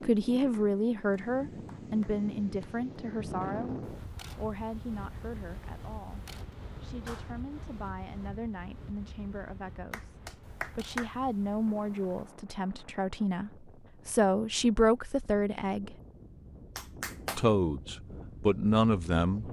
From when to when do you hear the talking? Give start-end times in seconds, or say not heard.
0.0-10.2, 10.8-15.9, 17.4-19.4.